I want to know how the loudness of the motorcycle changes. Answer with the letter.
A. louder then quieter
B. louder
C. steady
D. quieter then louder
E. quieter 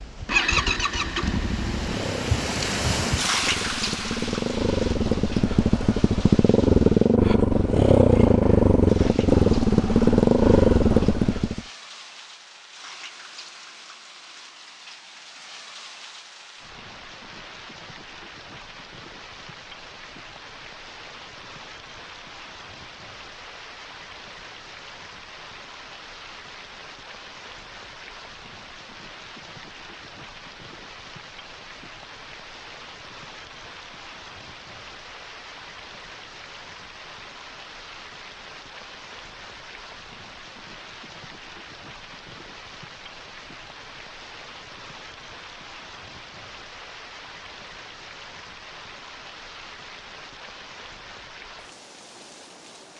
B.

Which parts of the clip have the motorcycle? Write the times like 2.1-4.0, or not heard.
0.0-11.6.